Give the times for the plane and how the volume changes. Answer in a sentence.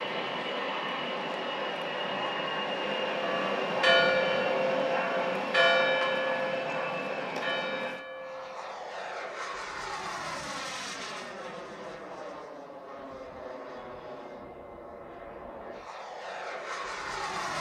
You can hear the plane from 0.0 to 17.5 s, getting quieter.